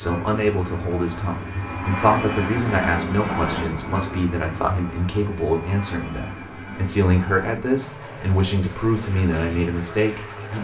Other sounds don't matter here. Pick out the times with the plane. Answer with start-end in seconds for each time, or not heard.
0.0-10.5.